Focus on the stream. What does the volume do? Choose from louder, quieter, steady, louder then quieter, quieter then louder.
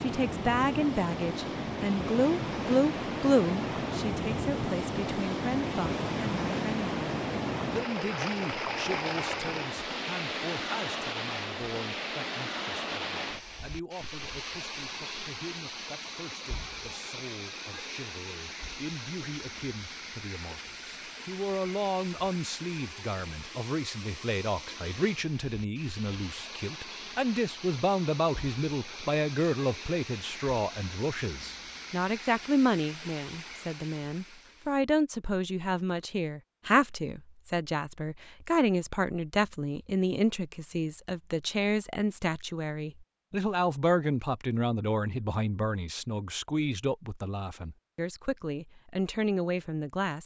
quieter.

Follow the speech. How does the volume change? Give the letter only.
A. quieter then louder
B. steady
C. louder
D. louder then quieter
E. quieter
A.